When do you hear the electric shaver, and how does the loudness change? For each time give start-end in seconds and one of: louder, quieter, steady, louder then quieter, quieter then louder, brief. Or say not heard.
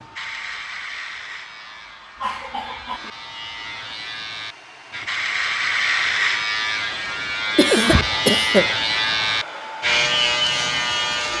0.0-11.3 louder.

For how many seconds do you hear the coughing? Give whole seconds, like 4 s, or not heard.
2 s.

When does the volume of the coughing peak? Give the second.
8 s.